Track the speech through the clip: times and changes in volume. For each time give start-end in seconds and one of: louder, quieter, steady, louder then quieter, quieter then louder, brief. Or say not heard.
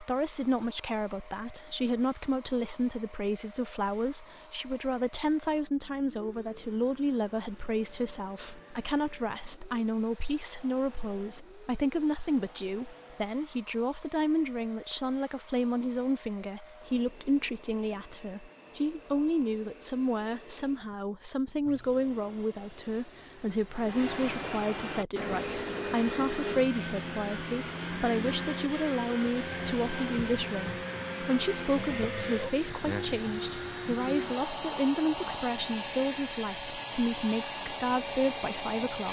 0.0-39.0 steady.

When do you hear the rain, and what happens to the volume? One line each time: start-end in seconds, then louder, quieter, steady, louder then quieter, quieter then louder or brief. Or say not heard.
not heard.